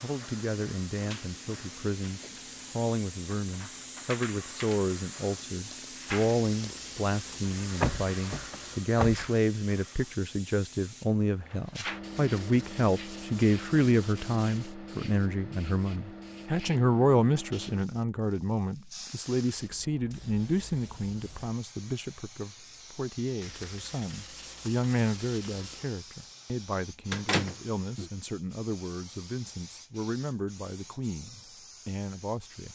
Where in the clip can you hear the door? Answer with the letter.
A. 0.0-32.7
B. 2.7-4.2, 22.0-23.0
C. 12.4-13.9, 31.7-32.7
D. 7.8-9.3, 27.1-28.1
D.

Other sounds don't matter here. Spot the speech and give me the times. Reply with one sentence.
You can hear the speech from 0.0 to 32.7 s.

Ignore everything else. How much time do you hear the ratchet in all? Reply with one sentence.
You can't hear the ratchet here.